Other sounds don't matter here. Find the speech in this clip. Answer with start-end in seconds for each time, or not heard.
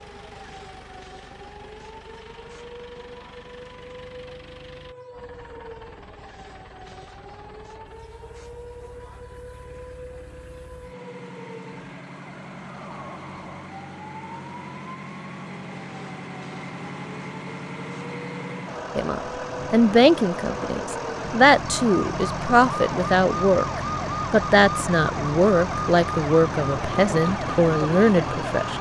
18.9-28.7.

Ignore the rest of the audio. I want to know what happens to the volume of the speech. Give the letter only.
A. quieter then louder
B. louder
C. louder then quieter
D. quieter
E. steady
E.